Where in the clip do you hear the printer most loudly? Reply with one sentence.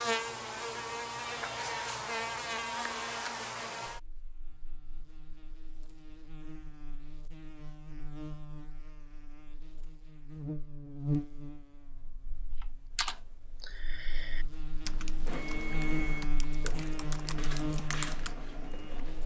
The loudest moment of the printer is at 16 seconds.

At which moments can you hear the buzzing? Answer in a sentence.
You can hear the buzzing from 0.0 to 19.2 s.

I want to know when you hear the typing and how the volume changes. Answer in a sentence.
You can hear the typing from 12.6 to 18.9 s, getting quieter then louder.